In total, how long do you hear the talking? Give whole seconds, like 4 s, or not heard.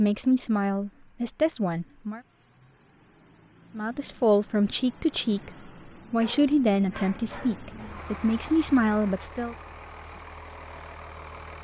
8 s.